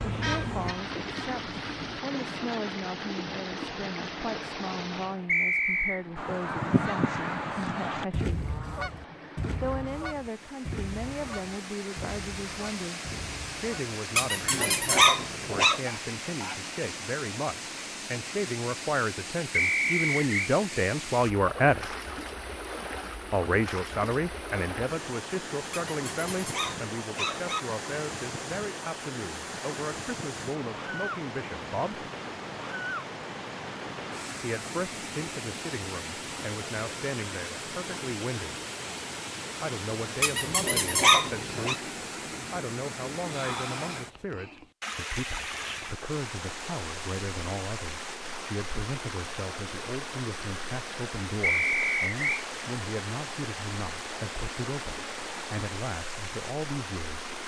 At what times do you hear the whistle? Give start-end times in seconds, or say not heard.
5.2-6.0, 19.5-20.5, 51.4-52.5.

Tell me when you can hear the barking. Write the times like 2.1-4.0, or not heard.
14.2-15.8, 25.7-27.6, 40.2-41.8.